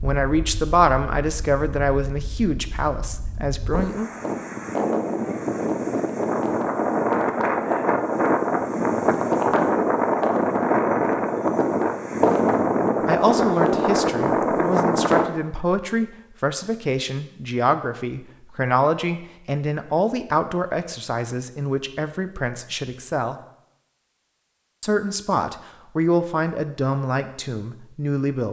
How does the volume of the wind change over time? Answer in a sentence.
The volume of the wind goes up.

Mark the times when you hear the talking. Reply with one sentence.
You can hear the talking from 0.0 to 4.1 s, from 13.1 to 23.4 s and from 24.8 to 28.4 s.